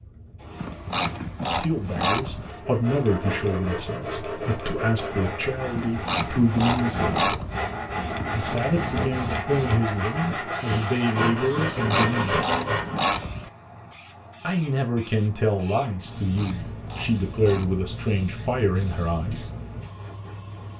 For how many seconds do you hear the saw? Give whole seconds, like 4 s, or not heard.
11 s.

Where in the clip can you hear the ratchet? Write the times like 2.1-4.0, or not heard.
0.6-2.5, 5.8-7.7, 11.7-13.5, 16.0-17.9.